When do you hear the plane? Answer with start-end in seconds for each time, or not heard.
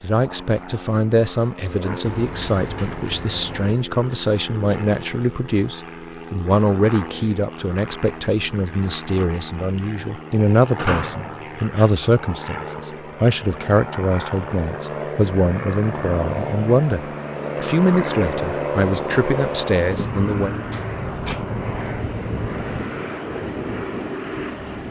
0.0-24.8.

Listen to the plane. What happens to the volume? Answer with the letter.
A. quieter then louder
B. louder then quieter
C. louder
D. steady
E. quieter
C.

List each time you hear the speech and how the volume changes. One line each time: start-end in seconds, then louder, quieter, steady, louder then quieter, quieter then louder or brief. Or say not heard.
0.0-20.5 steady.